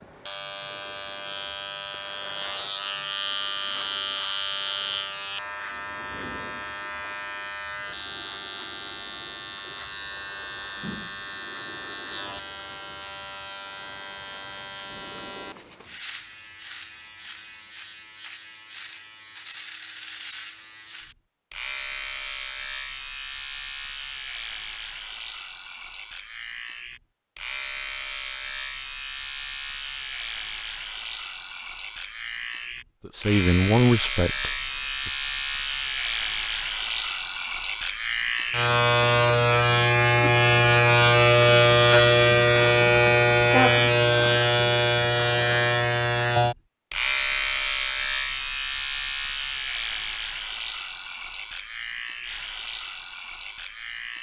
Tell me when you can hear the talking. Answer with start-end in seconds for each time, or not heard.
33.0-35.1.